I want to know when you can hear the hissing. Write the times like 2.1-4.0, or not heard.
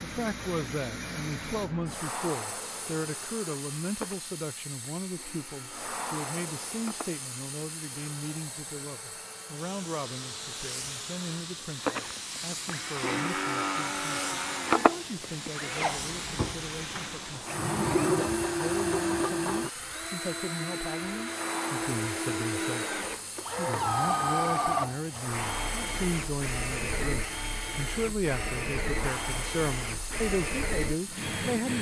0.0-31.7.